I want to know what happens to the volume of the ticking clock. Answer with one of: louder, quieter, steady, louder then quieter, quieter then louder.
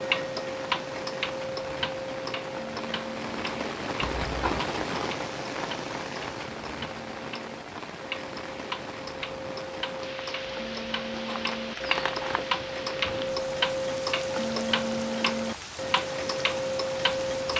quieter then louder.